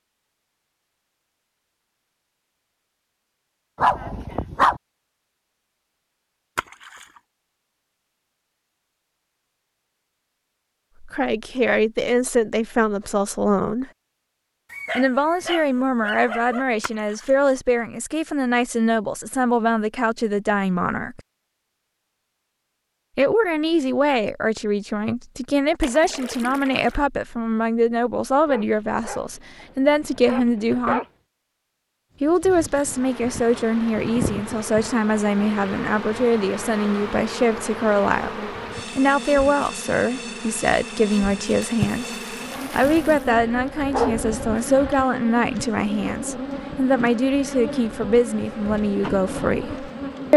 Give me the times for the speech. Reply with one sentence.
You can hear the speech from 11.0 to 13.9 s, from 14.9 to 21.2 s, from 23.1 to 31.0 s, from 32.2 to 42.1 s and from 42.7 to 50.3 s.